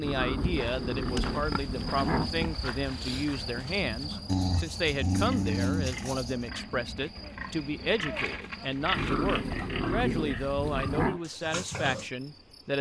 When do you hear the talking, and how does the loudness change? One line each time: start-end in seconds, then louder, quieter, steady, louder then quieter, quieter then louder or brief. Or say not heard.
0.0-12.7 steady.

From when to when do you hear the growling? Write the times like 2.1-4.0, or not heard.
0.0-2.3, 4.2-6.5, 8.9-11.2.